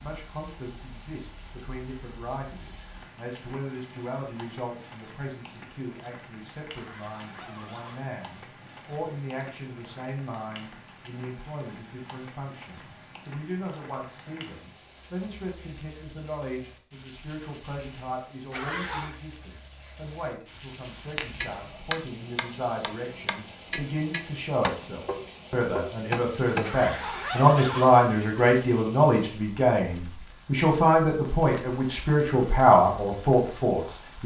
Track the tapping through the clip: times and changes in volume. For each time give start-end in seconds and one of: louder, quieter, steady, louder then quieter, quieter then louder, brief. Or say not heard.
21.1-26.7 quieter then louder.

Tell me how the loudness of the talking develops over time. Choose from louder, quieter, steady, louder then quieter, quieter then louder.
louder.